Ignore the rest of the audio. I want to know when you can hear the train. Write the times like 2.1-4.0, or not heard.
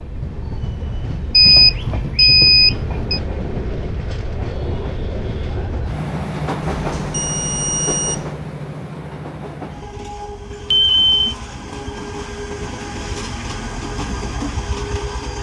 0.0-15.3.